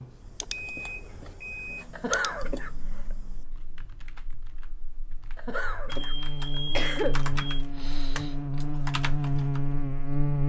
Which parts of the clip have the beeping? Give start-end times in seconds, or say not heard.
0.4-1.9, 5.9-7.7.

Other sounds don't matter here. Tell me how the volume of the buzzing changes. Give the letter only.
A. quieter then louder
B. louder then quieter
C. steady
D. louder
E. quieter
D.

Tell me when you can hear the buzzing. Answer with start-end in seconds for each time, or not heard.
2.4-10.4.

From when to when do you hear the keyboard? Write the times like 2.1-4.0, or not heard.
0.1-9.8.